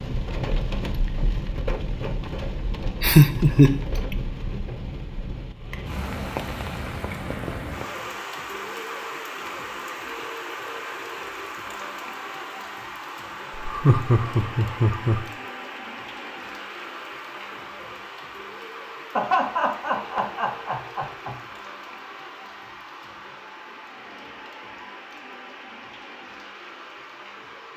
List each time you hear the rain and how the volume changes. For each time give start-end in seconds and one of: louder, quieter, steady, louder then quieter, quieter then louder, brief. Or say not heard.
0.0-27.7 quieter.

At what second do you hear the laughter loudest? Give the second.
3 s.